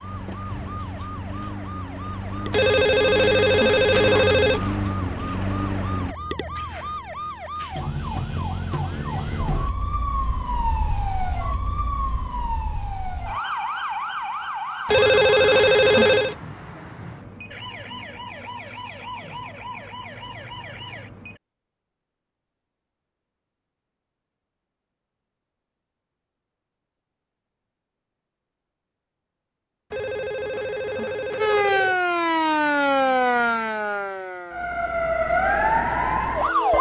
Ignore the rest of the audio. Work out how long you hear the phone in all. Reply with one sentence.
The phone can be heard for 6 seconds in total.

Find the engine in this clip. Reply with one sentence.
You can hear the engine from 0.0 to 6.2 s.